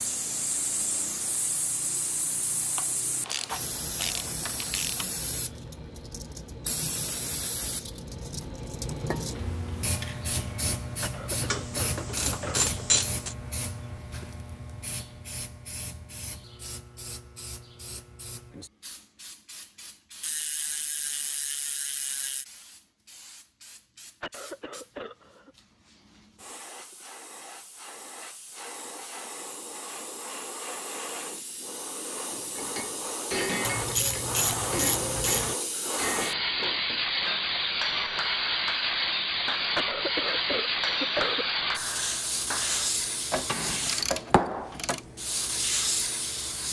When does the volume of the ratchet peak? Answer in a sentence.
The loudest moment of the ratchet is at 13 seconds.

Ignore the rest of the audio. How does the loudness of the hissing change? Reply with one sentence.
The volume of the hissing goes down, then up.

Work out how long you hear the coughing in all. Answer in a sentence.
You can hear the coughing for 5 seconds altogether.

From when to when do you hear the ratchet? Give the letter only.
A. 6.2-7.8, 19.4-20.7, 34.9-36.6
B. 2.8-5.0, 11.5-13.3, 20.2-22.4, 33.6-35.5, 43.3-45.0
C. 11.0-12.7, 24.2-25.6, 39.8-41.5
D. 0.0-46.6
B.